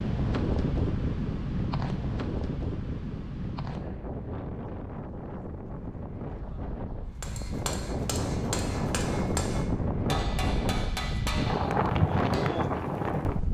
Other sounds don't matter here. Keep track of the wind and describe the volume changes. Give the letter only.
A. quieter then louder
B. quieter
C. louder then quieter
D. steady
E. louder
A.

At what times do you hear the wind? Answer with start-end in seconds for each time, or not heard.
0.0-13.4.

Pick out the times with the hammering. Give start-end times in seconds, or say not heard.
7.2-12.5.